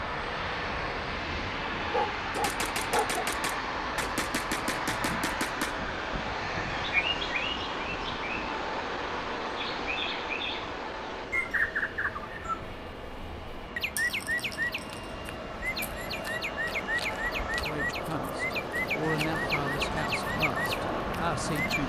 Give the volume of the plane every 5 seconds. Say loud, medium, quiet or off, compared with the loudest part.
loud, loud, medium, loud, loud.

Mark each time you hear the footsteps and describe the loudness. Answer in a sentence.
You can't hear the footsteps here.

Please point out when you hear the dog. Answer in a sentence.
The dog can be heard from 1.8 to 3.3 s.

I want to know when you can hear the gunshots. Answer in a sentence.
The gunshots can be heard from 2.3 to 5.8 s.